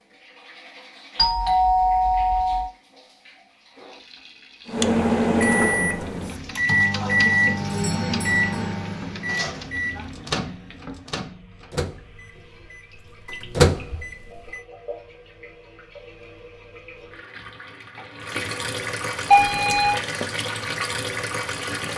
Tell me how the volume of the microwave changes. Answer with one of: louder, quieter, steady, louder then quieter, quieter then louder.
quieter then louder.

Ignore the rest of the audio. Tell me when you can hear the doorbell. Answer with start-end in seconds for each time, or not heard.
1.1-2.7, 7.7-8.7, 19.3-19.9.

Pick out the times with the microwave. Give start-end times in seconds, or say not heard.
4.7-14.6.